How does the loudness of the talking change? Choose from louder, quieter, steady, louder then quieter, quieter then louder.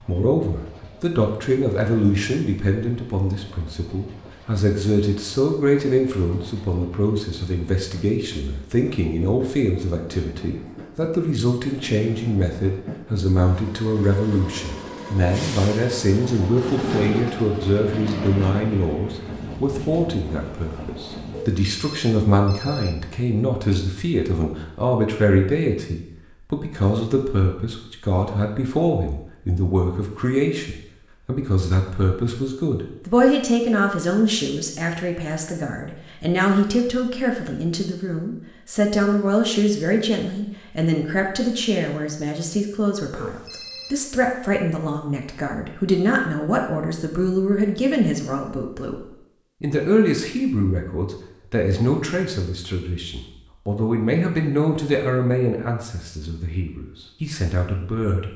steady.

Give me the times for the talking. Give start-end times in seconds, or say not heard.
0.1-58.3.